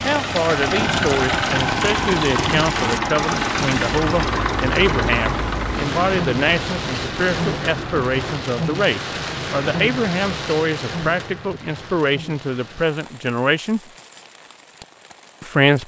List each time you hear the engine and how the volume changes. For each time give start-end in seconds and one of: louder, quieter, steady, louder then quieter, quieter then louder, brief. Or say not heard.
0.0-8.4 quieter.